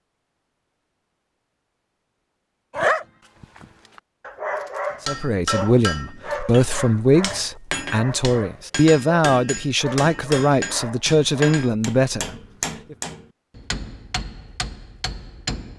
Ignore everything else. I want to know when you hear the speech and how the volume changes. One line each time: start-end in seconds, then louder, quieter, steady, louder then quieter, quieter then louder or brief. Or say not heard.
5.0-12.9 steady.